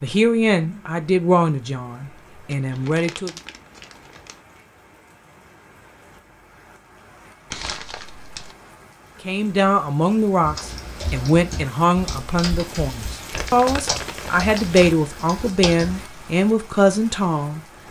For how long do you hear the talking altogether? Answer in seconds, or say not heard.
12 s.